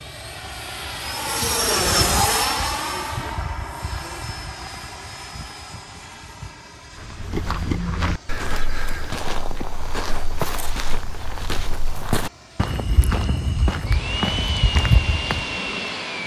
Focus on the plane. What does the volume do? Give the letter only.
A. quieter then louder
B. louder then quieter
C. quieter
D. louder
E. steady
A.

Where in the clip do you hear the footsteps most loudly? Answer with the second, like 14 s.
15 s.